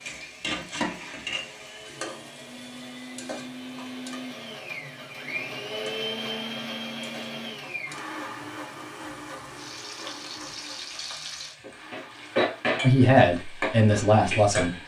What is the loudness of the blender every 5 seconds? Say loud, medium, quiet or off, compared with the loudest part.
medium, loud, medium.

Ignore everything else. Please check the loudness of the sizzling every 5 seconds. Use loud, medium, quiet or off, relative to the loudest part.
medium, quiet, loud.